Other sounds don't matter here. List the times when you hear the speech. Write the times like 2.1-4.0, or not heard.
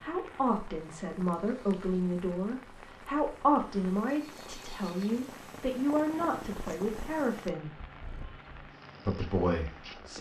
0.0-7.8, 9.1-10.1.